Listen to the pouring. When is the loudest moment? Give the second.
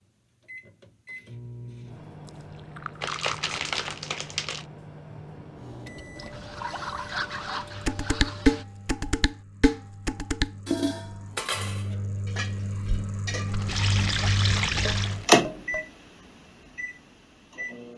15 s.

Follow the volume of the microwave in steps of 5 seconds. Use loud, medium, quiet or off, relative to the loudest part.
quiet, quiet, medium, loud.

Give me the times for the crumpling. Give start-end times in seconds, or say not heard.
3.0-4.7, 13.5-15.3.